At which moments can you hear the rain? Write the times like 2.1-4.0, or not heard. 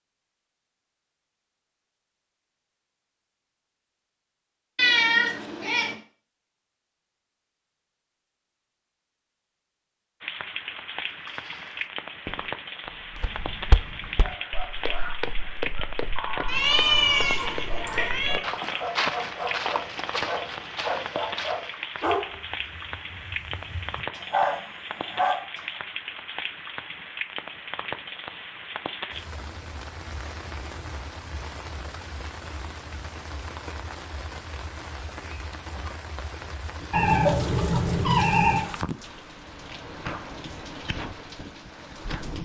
10.2-42.4.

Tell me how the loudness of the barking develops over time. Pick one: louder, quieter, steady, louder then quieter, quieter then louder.
louder.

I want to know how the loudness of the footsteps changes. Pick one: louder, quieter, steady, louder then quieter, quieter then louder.
louder then quieter.